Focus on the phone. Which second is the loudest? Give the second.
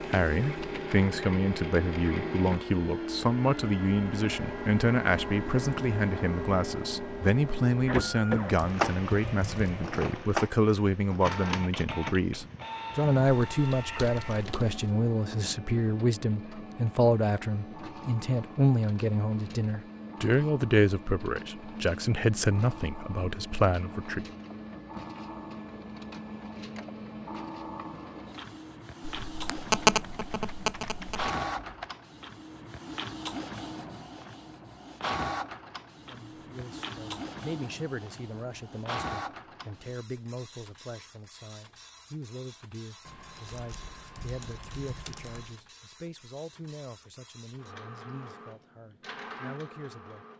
30 s.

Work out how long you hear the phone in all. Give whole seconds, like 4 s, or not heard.
2 s.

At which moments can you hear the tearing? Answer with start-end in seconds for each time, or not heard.
not heard.